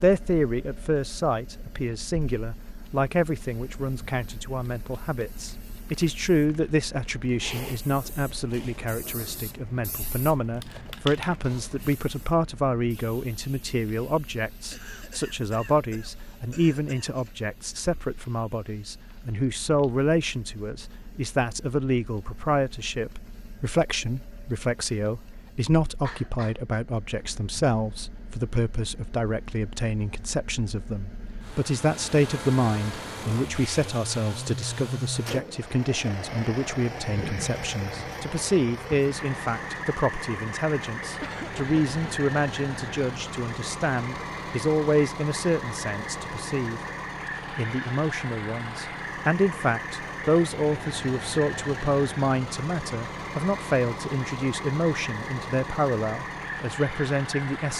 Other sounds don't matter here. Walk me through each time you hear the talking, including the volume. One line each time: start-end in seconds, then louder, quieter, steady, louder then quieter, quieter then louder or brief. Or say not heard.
0.0-46.8 steady
47.5-57.7 steady.